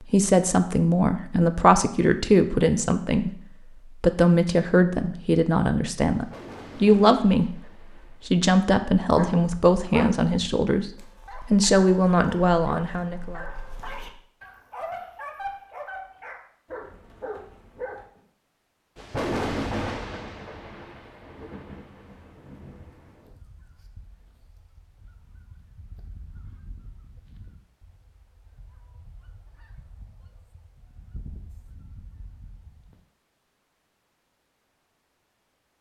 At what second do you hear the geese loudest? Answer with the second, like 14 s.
31 s.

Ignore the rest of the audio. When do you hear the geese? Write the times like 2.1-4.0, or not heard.
23.2-33.0.